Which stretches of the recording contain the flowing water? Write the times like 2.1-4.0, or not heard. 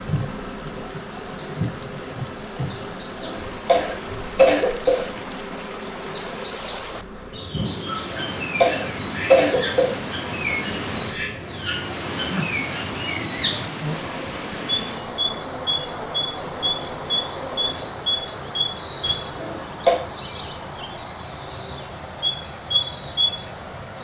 0.0-24.0.